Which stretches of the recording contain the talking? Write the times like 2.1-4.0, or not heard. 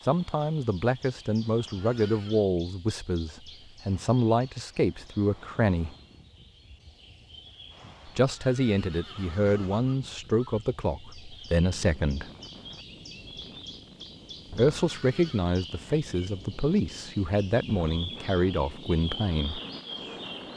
0.1-6.0, 8.1-12.3, 14.5-19.6.